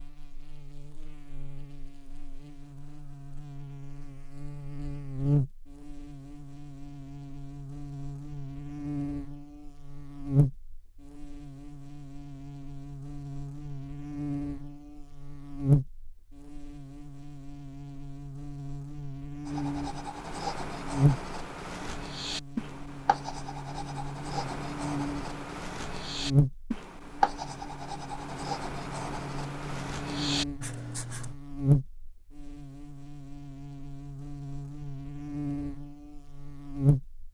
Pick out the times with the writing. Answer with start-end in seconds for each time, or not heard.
19.4-31.4.